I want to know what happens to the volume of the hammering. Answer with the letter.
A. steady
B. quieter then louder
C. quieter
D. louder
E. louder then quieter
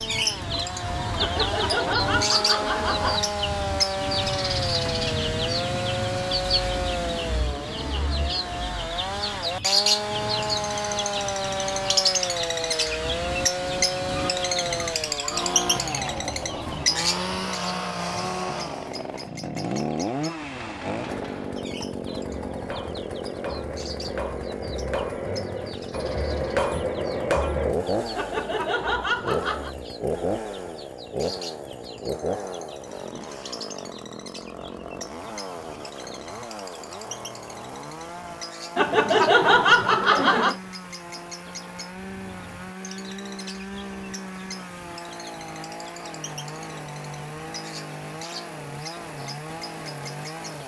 D.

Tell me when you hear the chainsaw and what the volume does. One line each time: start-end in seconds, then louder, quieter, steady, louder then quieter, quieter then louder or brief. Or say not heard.
0.0-50.6 quieter.